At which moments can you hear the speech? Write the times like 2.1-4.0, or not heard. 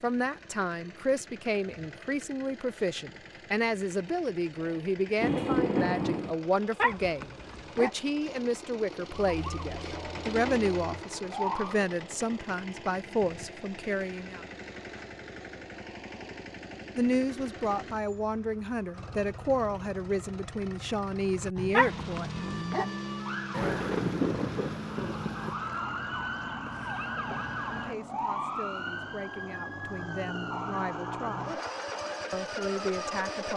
0.0-14.4, 16.9-22.9, 27.7-31.6, 32.3-33.5.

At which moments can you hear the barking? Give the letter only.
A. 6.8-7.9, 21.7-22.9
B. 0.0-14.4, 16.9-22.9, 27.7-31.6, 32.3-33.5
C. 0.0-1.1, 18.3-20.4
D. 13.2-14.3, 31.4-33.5
A.